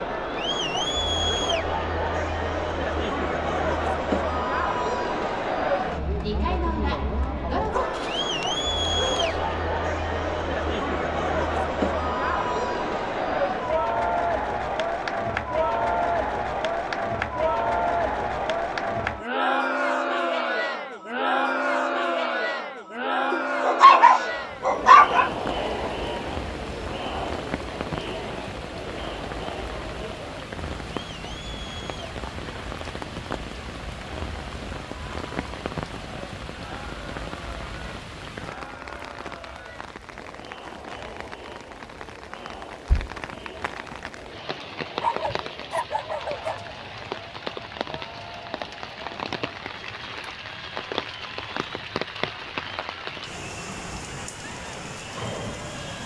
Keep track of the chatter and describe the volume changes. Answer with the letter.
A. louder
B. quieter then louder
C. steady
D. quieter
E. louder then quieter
D.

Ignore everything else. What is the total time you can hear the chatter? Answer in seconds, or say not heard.
56 s.